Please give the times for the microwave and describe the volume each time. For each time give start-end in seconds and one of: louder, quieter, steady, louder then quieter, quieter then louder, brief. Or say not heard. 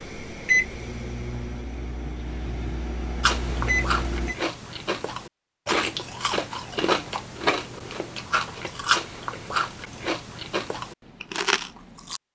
0.0-4.3 quieter then louder.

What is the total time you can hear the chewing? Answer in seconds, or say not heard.
9 s.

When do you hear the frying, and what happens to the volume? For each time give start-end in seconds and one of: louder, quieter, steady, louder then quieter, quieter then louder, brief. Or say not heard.
not heard.